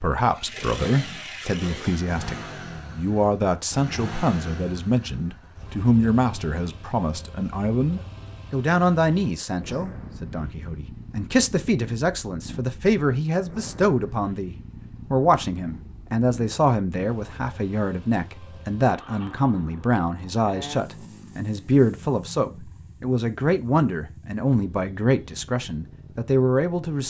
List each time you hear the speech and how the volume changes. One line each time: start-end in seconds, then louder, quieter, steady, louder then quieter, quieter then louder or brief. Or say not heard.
0.0-27.0 steady.